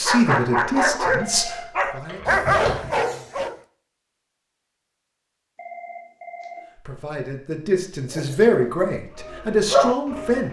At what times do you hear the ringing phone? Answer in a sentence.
You can hear the ringing phone from 1.2 to 1.9 s and from 5.5 to 6.7 s.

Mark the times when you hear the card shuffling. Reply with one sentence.
The card shuffling can't be heard in this clip.